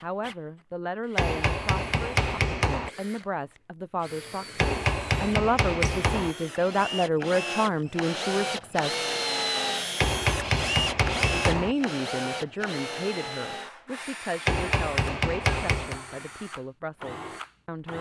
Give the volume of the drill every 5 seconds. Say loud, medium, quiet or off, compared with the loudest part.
quiet, loud, loud, medium.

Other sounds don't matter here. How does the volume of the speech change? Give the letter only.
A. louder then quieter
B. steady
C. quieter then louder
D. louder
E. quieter
A.